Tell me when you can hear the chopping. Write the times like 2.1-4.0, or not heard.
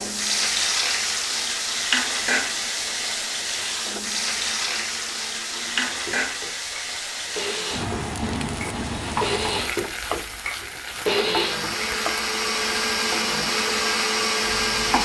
not heard.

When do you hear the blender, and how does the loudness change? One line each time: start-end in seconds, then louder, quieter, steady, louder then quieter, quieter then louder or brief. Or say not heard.
0.2-14.9 louder.